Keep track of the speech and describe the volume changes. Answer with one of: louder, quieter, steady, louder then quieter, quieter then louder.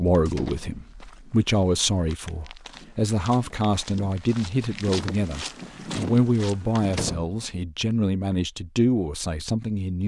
steady.